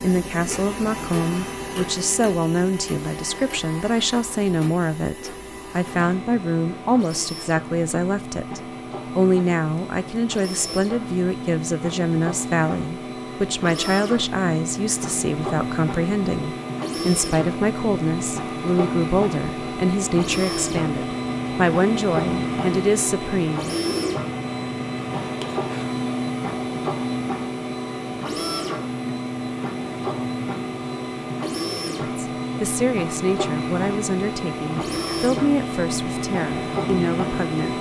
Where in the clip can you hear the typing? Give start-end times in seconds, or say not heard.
not heard.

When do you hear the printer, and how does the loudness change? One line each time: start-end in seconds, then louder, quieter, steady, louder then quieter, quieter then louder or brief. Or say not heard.
0.0-37.7 louder.